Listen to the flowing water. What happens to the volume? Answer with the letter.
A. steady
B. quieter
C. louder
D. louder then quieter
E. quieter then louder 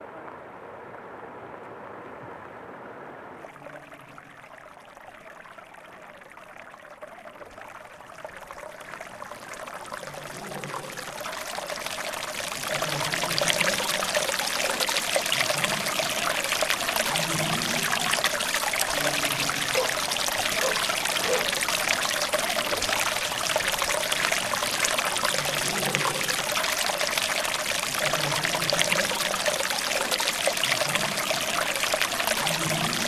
C.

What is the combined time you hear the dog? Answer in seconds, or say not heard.
2 s.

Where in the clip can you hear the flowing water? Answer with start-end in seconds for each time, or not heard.
0.0-33.0.